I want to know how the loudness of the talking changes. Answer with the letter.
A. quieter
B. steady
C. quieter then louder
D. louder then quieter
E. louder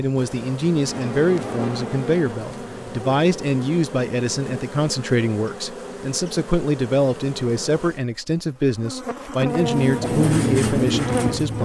B.